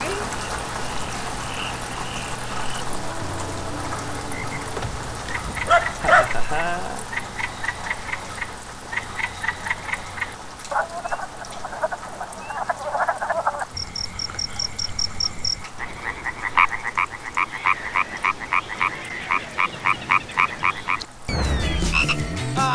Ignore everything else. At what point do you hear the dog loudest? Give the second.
6 s.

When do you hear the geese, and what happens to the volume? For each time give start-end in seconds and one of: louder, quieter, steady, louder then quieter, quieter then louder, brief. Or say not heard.
not heard.